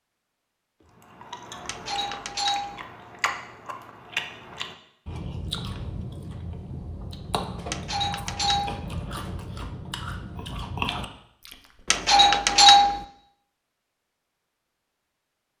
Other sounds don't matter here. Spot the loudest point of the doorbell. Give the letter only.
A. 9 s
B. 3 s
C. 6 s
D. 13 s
D.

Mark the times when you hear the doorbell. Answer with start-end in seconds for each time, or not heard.
1.6-2.8, 7.7-8.8, 11.9-13.0.